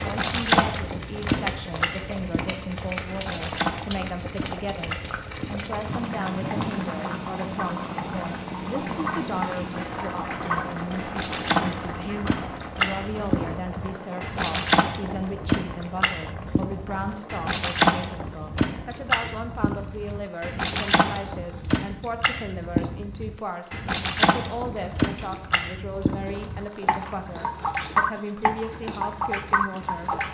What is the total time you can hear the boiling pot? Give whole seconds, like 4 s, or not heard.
30 s.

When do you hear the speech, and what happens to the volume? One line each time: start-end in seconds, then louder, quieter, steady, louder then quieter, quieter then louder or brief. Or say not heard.
0.0-30.1 steady.